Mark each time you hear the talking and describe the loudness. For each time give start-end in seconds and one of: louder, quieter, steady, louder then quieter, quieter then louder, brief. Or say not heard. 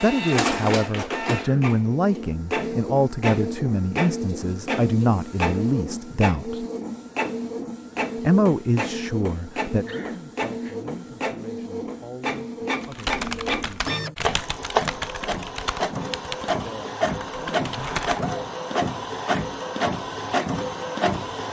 0.0-6.7 steady
8.2-13.9 quieter
16.5-17.6 brief.